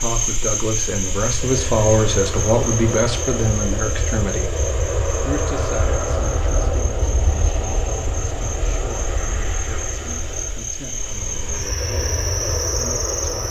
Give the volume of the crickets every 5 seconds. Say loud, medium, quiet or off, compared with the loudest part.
loud, medium, loud.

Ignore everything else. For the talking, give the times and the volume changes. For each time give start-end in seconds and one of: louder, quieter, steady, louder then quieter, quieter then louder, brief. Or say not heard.
0.0-13.4 quieter.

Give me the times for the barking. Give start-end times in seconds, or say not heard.
not heard.